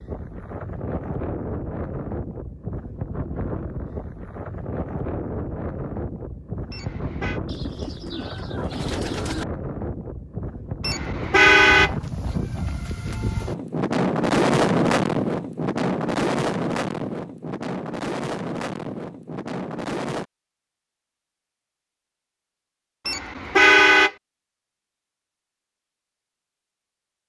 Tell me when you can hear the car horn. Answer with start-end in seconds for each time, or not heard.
6.7-7.4, 10.8-11.9, 23.1-24.1.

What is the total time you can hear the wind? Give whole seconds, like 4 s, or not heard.
20 s.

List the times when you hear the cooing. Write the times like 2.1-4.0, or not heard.
7.5-9.4.